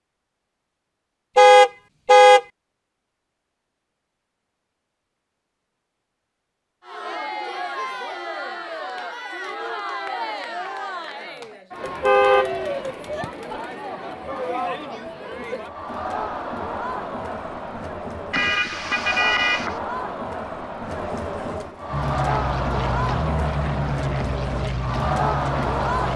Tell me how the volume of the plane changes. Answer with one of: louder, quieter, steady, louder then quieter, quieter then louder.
steady.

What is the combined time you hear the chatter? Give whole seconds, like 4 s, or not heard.
19 s.